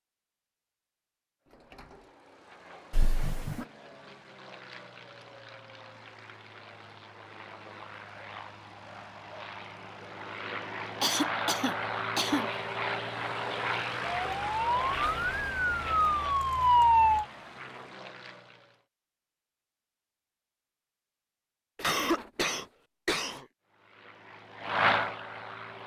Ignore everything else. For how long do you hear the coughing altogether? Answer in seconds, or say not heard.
4 s.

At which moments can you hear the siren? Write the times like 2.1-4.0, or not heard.
14.2-17.2.